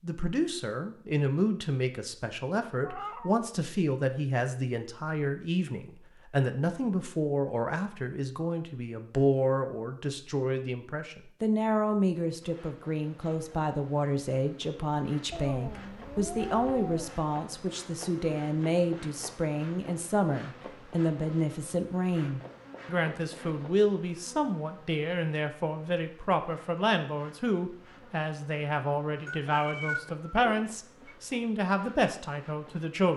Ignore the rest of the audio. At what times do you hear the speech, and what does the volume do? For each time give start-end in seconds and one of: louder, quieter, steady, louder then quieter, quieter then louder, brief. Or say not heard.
0.0-33.1 steady.